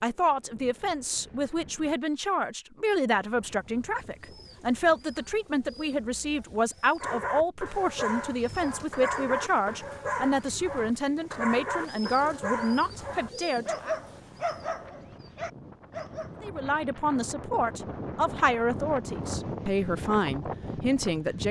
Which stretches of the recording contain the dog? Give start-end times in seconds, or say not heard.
7.0-16.4.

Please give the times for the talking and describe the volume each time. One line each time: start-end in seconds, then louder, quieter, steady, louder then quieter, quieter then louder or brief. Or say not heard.
0.0-13.9 steady
16.4-21.4 steady.